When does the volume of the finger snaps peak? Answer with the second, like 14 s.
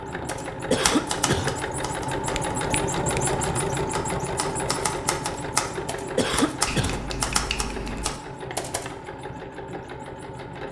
7 s.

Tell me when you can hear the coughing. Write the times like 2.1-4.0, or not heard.
0.7-1.6, 6.2-7.0.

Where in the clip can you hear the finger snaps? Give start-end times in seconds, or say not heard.
2.1-3.4, 6.7-8.2.